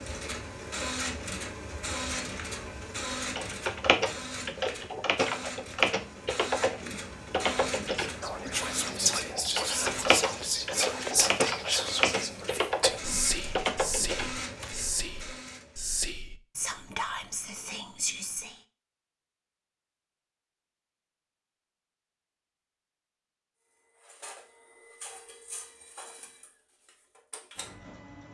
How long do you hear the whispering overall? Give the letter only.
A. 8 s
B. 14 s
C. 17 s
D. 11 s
D.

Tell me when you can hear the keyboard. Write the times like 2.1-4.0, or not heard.
3.4-14.7.